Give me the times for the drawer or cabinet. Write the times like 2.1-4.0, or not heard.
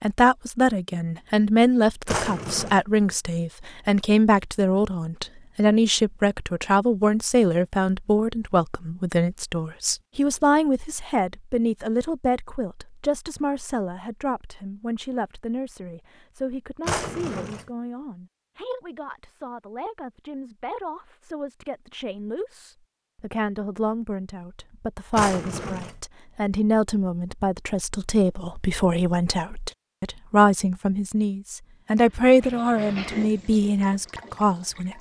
2.0-2.8, 16.9-17.6, 25.1-25.9.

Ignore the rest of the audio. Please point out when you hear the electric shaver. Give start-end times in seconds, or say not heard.
not heard.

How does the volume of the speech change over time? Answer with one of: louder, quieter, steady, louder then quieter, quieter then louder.
quieter then louder.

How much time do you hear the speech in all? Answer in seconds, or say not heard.
35 s.